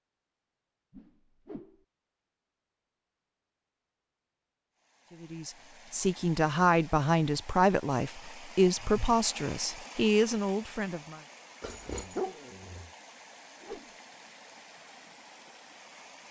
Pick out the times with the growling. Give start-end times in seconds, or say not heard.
11.6-12.9.